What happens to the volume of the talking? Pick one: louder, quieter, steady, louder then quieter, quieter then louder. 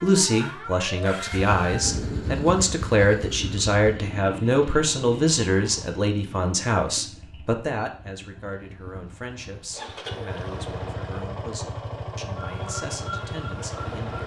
quieter.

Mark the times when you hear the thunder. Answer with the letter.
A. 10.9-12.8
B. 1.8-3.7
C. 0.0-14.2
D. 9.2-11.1
B.